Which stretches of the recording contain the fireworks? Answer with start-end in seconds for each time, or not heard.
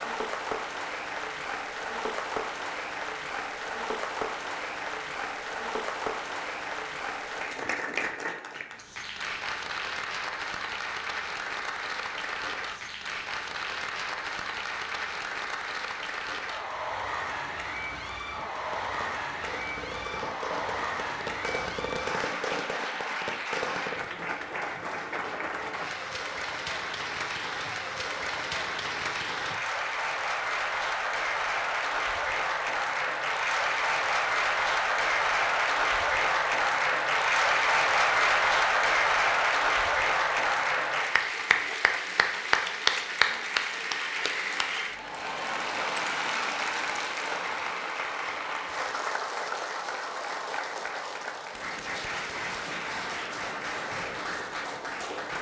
18.5-24.1.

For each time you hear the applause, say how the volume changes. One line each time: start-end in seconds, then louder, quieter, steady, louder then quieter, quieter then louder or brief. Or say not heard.
0.0-55.3 louder then quieter.